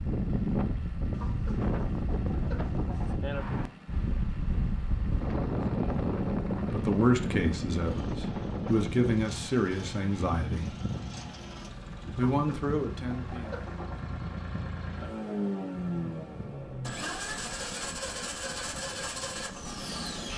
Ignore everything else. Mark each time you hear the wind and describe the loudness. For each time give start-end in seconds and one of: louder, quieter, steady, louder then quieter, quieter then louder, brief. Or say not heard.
0.0-20.3 quieter.